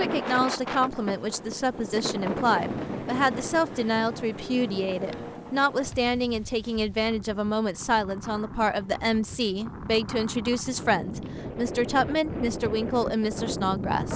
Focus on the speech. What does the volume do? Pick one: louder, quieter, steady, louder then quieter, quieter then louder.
steady.